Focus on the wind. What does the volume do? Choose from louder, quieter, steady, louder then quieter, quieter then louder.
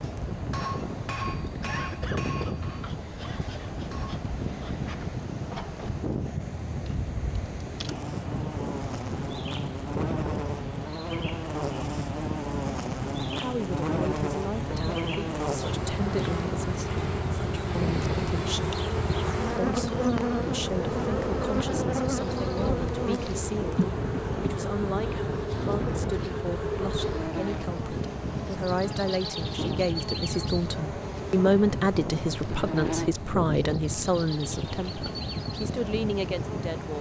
steady.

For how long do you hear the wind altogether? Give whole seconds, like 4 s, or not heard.
37 s.